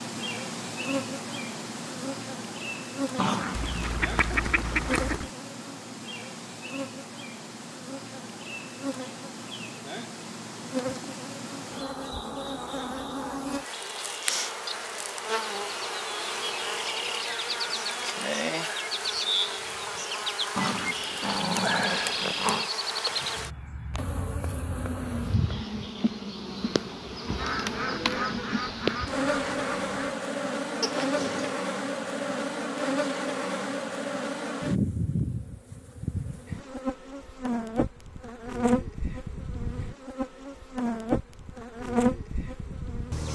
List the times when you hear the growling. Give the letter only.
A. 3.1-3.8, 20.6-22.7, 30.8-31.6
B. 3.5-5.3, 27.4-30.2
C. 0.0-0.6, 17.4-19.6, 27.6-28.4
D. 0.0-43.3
A.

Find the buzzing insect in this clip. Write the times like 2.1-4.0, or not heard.
0.0-43.3.